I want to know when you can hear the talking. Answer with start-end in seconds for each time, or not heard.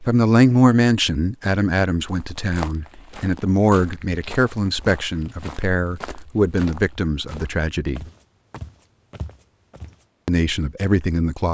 0.0-8.1, 10.2-11.4.